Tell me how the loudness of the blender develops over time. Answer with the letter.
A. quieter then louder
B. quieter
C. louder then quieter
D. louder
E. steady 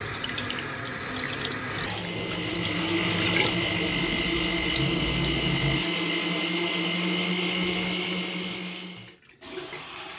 E.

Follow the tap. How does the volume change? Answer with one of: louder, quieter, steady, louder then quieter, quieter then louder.
quieter.